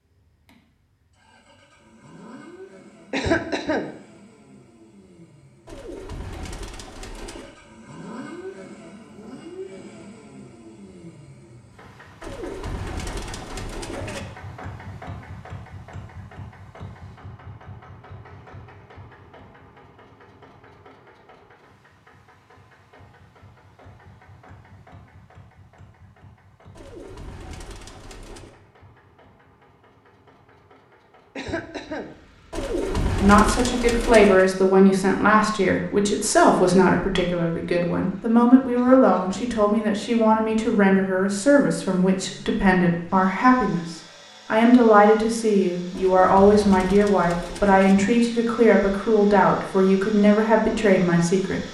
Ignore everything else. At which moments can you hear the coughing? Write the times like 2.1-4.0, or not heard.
3.1-3.9, 31.4-32.1, 38.7-39.5.